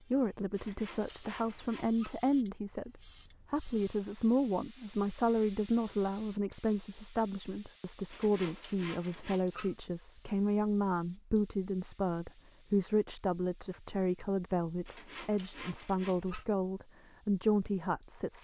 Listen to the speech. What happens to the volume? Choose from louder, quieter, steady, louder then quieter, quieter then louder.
steady.